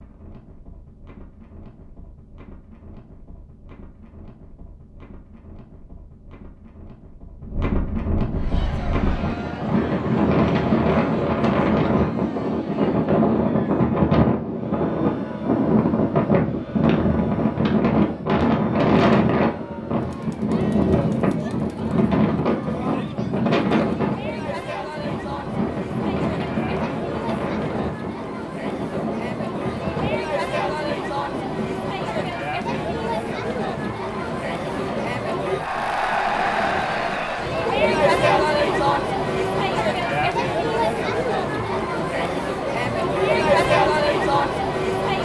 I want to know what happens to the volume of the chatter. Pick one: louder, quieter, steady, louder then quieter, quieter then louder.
louder.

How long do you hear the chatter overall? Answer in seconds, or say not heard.
37 s.